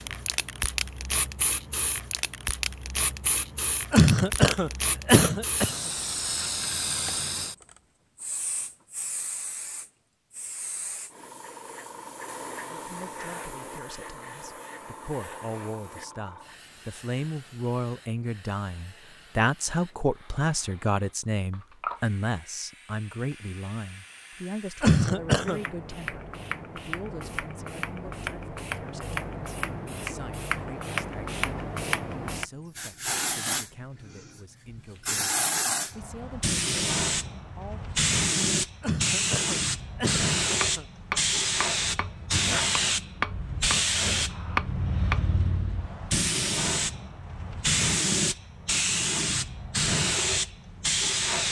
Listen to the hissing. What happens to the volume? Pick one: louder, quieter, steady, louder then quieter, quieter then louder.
quieter then louder.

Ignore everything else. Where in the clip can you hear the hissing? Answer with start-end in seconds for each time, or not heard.
0.0-51.4.